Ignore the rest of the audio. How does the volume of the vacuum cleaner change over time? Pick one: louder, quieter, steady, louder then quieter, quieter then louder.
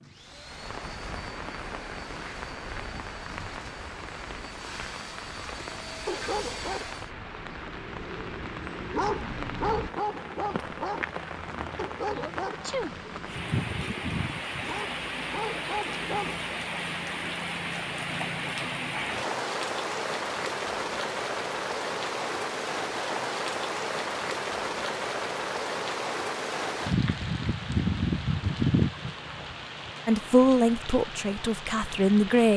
louder.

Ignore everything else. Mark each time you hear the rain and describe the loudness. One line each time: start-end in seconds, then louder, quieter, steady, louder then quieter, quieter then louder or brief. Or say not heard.
0.0-32.5 louder.